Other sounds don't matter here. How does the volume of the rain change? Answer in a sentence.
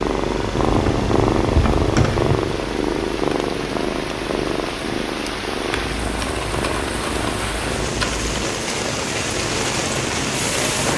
The loudness of the rain goes up.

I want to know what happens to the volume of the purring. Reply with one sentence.
The volume of the purring goes down.